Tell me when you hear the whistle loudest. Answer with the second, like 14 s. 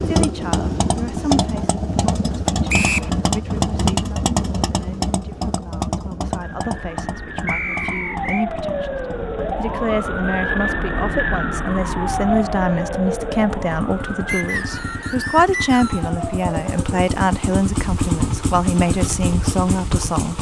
3 s.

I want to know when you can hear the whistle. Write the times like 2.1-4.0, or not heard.
2.6-3.1, 7.5-8.4, 14.2-16.1.